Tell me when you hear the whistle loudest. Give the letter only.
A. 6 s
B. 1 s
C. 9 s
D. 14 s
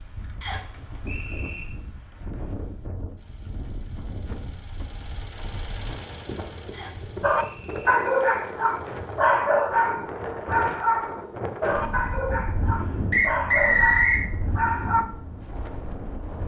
D.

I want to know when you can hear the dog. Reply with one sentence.
You can hear the dog from 7.2 to 15.1 s.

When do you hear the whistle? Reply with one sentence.
The whistle can be heard from 0.4 to 1.6 s, from 6.7 to 8.0 s and from 13.1 to 14.2 s.